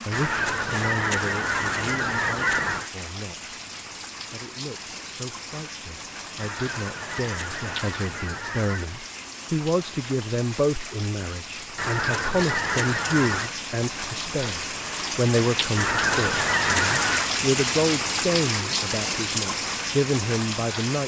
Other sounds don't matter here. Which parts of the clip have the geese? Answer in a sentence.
The geese can be heard from 0.1 to 2.9 s, from 6.3 to 8.9 s, from 11.8 to 13.6 s and from 15.8 to 17.4 s.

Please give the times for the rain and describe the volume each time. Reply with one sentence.
You can hear the rain from 0.0 to 21.0 s, getting louder.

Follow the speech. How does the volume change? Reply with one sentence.
The loudness of the speech goes up.